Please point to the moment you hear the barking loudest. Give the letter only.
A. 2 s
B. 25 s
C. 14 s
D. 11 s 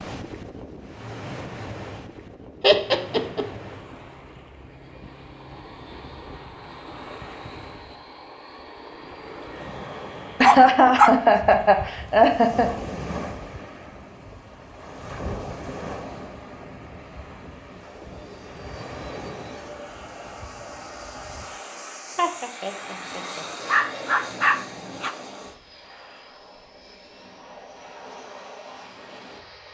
D.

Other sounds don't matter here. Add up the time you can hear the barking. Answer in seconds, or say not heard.
3 s.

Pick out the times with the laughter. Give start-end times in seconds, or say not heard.
2.6-3.5, 10.4-12.7, 22.1-23.4.